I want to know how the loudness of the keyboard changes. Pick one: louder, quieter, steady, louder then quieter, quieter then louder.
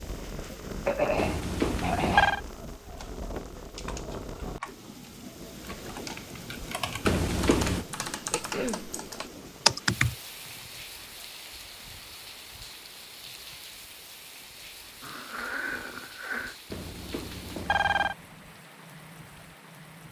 quieter then louder.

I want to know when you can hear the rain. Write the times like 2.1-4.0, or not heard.
0.0-20.0.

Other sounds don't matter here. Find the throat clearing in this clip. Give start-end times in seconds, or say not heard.
0.8-2.4, 8.3-8.8, 15.0-16.6.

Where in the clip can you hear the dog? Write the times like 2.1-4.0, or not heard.
not heard.